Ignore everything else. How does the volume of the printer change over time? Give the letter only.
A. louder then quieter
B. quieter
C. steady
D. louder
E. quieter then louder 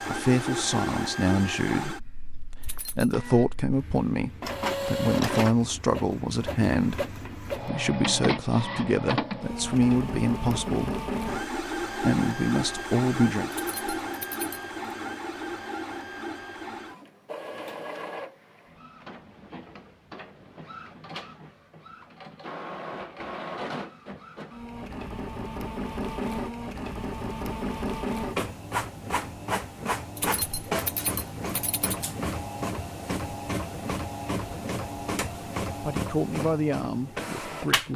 E.